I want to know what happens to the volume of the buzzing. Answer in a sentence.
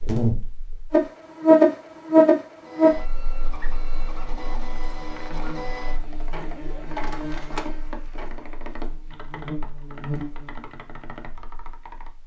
The volume of the buzzing goes down, then up.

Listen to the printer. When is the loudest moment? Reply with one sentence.
The volume of the printer peaks at 7 seconds.